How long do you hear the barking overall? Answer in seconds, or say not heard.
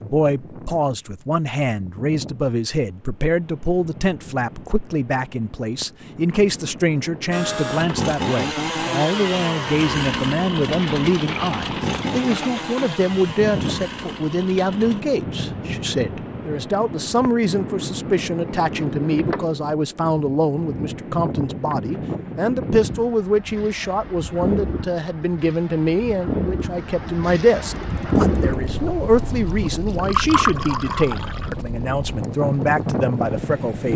not heard.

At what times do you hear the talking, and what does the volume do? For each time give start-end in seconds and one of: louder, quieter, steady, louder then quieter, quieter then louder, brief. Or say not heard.
0.0-33.9 steady.